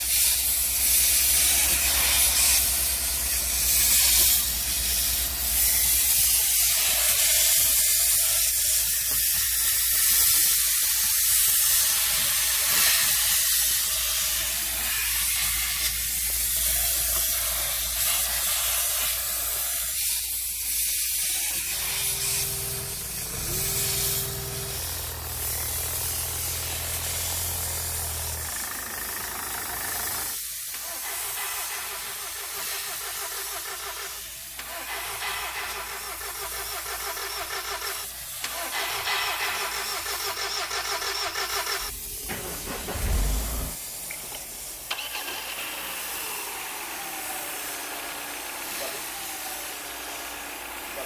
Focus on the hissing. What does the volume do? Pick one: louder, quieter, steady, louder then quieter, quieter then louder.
quieter.